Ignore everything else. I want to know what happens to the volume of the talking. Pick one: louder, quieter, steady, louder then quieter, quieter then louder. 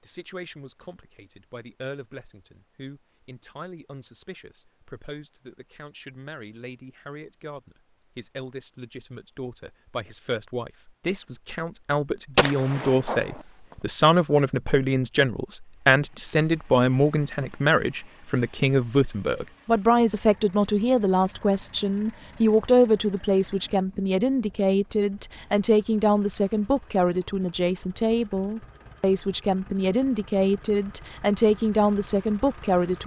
louder.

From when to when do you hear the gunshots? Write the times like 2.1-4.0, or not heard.
12.3-13.4.